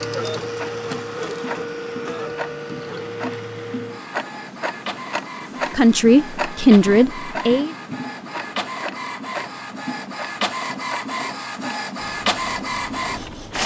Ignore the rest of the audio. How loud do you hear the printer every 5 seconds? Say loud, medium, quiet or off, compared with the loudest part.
loud, medium, loud.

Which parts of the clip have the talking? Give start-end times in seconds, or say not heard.
5.7-7.8.